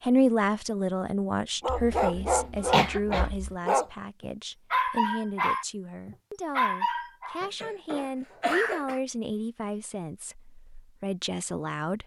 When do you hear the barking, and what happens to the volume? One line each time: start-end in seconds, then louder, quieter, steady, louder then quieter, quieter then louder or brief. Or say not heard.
1.6-8.6 quieter.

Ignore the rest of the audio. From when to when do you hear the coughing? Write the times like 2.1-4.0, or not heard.
1.6-3.5, 7.4-9.0.